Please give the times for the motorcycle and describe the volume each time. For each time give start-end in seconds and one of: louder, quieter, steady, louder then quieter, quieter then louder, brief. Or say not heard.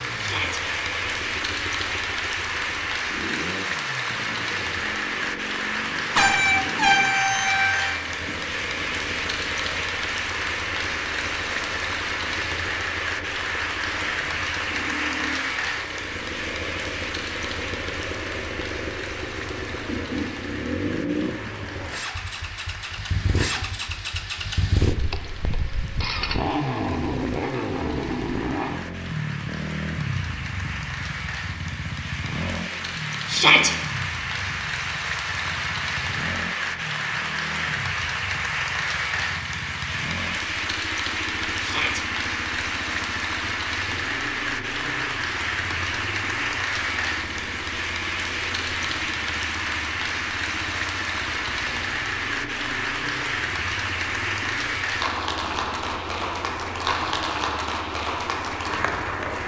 0.0-59.4 louder then quieter.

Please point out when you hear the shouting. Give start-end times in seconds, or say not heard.
0.1-0.6, 33.2-33.7, 41.6-42.0.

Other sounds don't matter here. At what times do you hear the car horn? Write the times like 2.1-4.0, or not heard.
6.2-7.9.